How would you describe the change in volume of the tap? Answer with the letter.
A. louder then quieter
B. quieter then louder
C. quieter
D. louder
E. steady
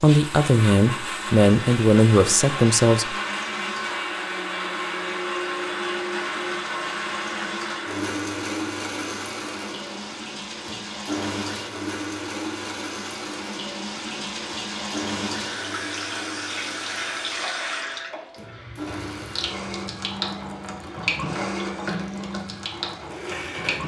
D.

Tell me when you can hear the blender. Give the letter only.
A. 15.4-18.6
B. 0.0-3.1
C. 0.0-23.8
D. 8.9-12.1
C.